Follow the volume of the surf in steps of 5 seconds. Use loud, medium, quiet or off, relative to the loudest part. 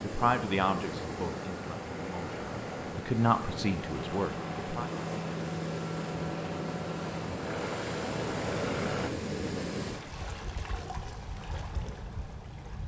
loud, loud, medium.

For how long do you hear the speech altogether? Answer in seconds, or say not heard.
5 s.